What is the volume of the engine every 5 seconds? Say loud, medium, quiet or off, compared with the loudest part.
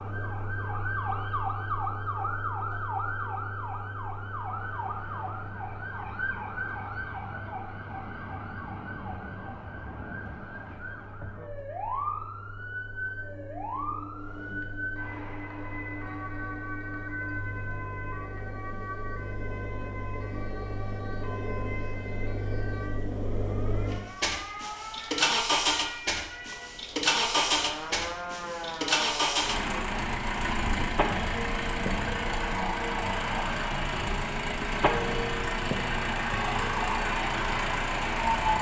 quiet, quiet, quiet, quiet, medium, loud, loud, loud.